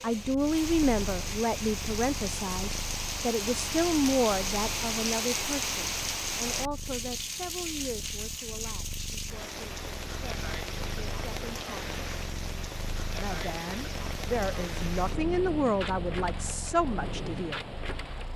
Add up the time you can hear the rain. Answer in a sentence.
You can hear the rain for 18 seconds altogether.